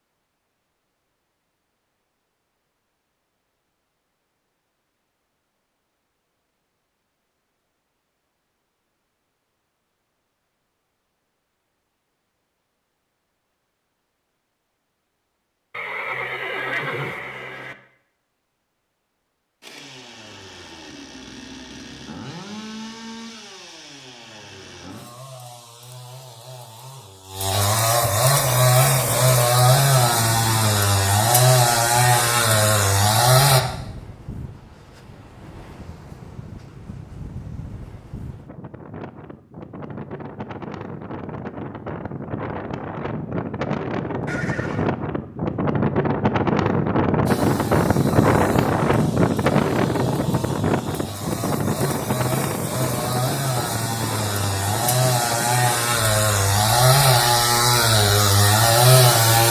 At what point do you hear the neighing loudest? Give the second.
17 s.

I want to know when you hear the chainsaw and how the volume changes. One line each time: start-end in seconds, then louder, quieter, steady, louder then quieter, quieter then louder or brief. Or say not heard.
19.6-33.6 louder
47.2-59.4 louder.